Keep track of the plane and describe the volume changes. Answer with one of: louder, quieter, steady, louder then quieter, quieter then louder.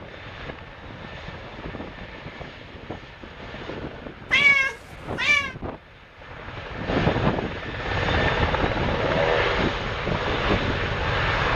louder.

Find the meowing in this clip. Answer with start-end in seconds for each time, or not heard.
4.3-5.5.